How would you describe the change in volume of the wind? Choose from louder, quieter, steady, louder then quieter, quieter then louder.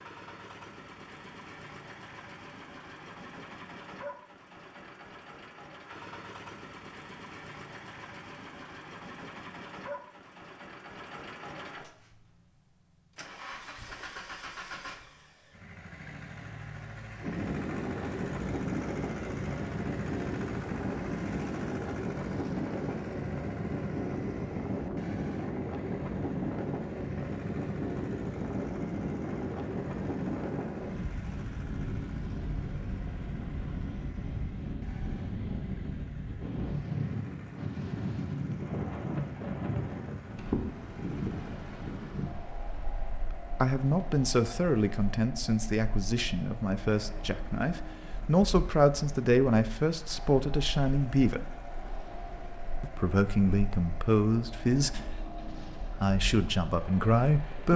quieter.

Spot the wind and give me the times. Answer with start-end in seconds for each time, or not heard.
17.2-57.7.